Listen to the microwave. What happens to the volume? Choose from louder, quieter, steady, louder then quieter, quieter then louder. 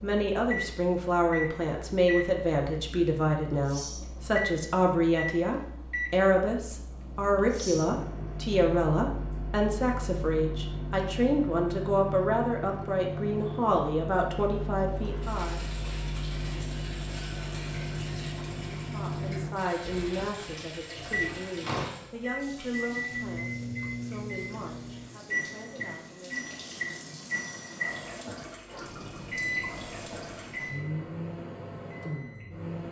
steady.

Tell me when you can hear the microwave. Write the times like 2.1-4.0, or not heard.
0.0-32.8.